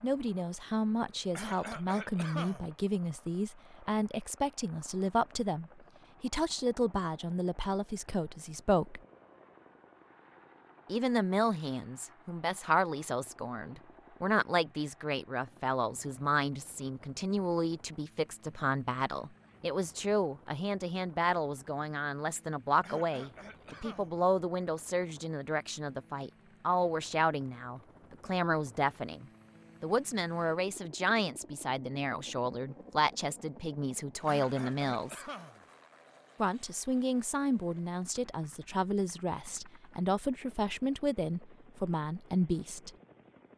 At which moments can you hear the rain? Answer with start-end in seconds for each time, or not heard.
not heard.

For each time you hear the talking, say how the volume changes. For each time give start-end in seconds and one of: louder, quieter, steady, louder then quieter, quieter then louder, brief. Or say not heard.
0.0-9.0 steady
10.8-35.2 steady
36.4-42.9 steady.